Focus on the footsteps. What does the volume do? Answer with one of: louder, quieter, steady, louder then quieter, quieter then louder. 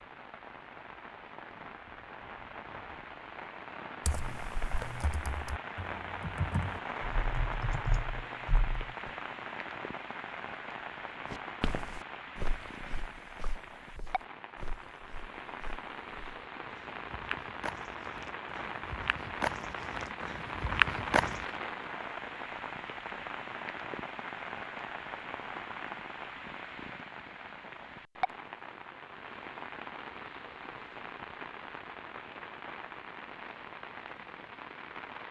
quieter then louder.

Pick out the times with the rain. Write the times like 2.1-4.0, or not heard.
0.0-35.2.